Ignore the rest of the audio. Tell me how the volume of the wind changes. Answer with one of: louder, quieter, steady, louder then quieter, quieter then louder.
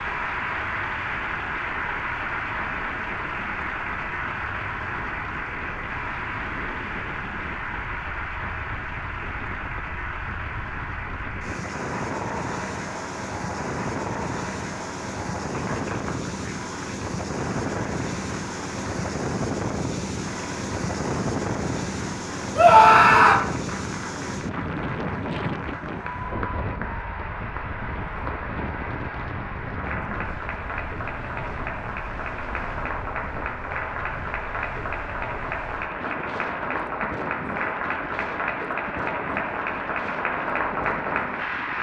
louder then quieter.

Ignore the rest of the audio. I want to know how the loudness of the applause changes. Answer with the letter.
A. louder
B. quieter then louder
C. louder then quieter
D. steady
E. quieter
B.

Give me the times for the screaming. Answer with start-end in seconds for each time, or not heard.
22.6-23.4.